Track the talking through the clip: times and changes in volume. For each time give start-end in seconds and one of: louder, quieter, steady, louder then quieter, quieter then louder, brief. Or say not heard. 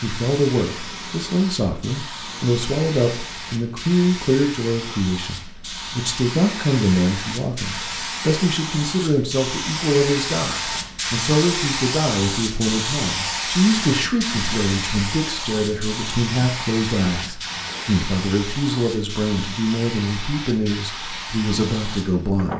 0.0-22.5 steady.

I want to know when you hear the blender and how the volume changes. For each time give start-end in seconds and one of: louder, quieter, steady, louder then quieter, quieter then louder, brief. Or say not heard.
not heard.